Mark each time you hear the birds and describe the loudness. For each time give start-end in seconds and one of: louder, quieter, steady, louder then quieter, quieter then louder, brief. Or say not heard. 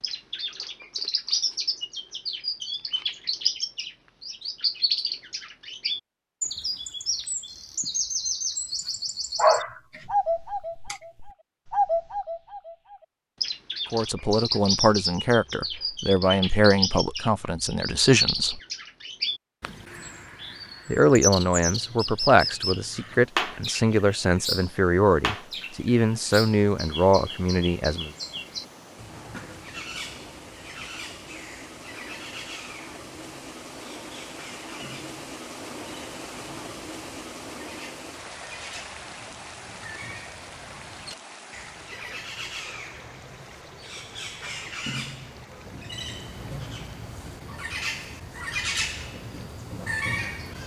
0.0-50.6 quieter then louder.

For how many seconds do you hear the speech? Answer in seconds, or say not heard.
12 s.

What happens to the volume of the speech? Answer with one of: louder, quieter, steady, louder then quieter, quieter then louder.
steady.